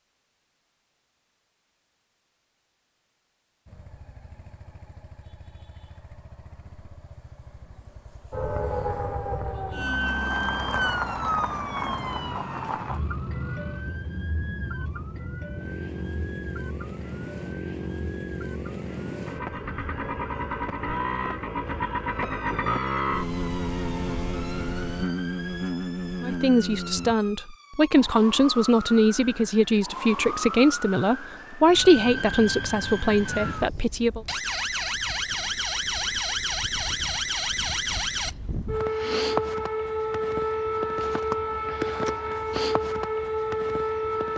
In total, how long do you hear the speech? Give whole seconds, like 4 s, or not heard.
8 s.